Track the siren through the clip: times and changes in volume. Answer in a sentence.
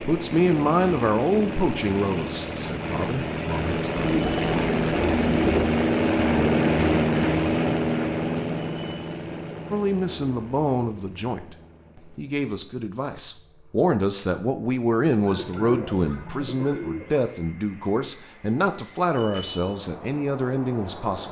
The siren can't be heard in this clip.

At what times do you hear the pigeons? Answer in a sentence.
You can hear the pigeons from 4.0 to 5.8 s and from 15.2 to 17.2 s.